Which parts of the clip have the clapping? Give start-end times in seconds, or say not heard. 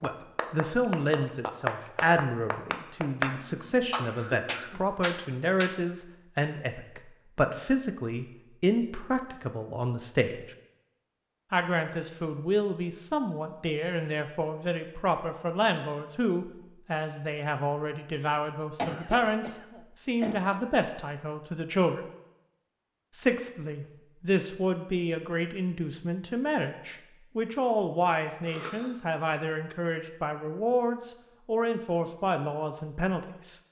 0.0-5.8.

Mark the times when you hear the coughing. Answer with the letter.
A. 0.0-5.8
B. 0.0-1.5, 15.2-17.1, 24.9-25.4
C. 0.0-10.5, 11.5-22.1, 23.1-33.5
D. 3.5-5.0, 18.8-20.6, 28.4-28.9
D.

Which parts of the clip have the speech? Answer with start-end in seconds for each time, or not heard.
0.0-10.5, 11.5-22.1, 23.1-33.5.